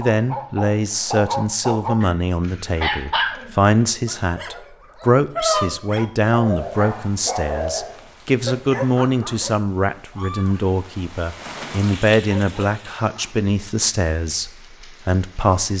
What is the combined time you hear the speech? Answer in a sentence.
The speech can be heard for 16 seconds in total.